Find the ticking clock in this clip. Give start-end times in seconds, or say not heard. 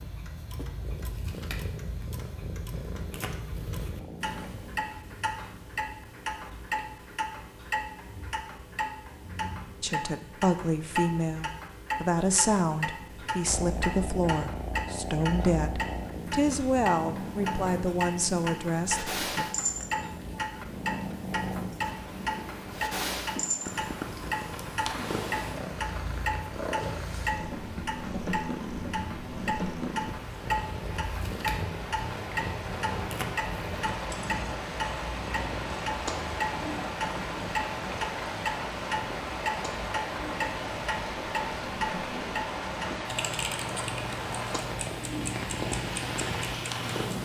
0.0-47.2.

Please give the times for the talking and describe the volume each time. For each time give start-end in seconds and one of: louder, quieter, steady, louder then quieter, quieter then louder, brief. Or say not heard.
9.8-19.4 steady.